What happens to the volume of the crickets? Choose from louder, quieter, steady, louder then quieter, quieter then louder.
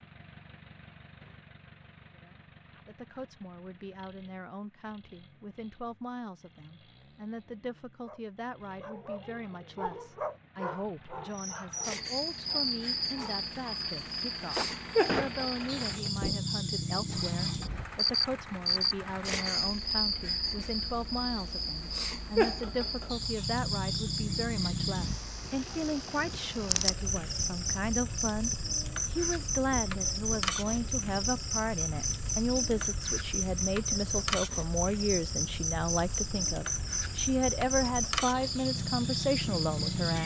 steady.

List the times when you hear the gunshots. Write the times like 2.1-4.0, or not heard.
14.6-16.4.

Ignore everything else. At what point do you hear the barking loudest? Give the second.
10 s.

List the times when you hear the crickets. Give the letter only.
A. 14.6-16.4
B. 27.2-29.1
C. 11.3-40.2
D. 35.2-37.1
C.